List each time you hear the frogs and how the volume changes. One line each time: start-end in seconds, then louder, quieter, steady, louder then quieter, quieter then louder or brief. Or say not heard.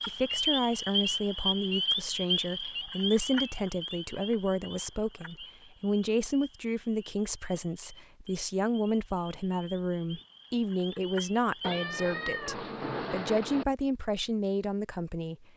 0.0-11.8 quieter then louder.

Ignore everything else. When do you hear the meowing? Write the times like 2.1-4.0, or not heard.
11.6-13.7.